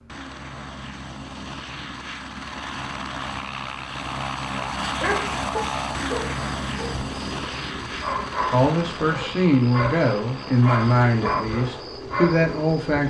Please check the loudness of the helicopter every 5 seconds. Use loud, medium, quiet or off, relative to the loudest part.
loud, loud, medium.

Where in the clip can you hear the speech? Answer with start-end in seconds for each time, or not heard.
8.5-13.0.